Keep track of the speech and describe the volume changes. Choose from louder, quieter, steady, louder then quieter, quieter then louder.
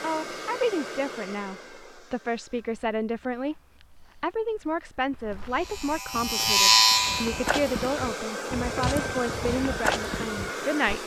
steady.